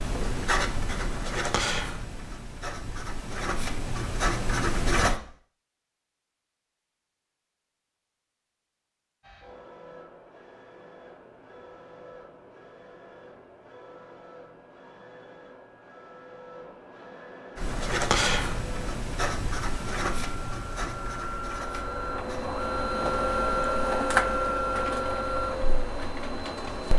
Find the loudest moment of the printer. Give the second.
24 s.